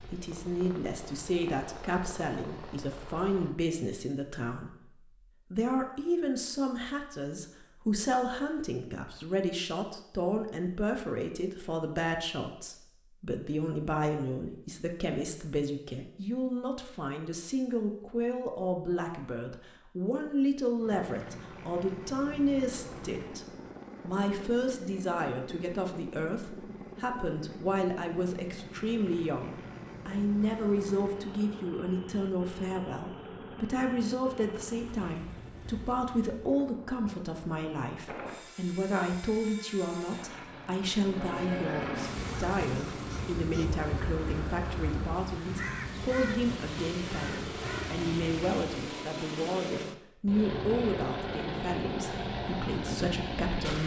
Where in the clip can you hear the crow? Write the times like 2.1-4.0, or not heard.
42.2-48.7.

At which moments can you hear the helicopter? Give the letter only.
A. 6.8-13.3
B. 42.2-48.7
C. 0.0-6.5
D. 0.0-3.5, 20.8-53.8
D.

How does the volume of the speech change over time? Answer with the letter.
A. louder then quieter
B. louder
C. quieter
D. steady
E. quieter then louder
D.